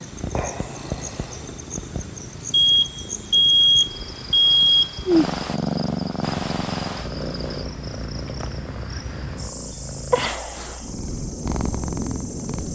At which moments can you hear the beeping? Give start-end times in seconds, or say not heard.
2.5-5.0.